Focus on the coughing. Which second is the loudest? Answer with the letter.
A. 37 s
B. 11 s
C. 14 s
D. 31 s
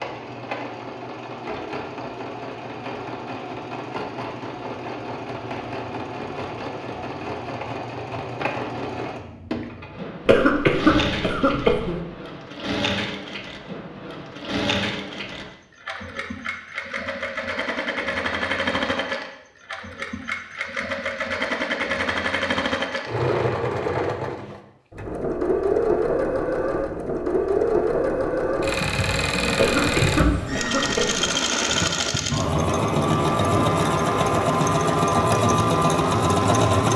B.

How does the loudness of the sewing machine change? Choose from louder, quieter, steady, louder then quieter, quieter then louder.
louder.